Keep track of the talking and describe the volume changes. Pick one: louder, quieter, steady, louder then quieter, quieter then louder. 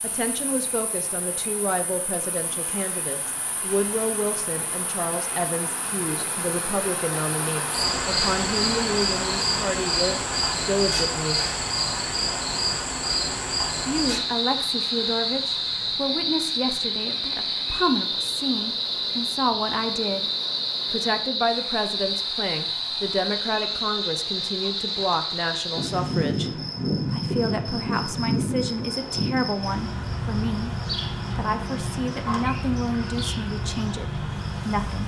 steady.